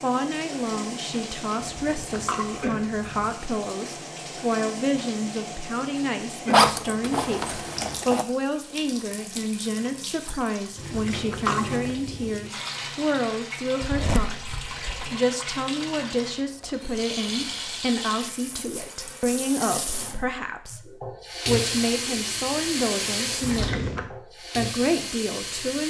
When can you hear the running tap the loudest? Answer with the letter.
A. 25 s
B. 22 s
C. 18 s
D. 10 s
B.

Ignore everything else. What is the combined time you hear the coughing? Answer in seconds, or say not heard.
4 s.